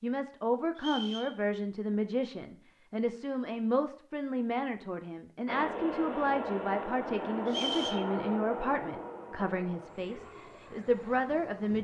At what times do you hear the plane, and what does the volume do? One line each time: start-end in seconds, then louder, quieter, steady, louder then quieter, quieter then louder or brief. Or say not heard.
5.5-11.7 quieter.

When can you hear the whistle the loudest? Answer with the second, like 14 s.
8 s.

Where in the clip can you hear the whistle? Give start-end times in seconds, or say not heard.
0.8-1.4, 7.5-8.1.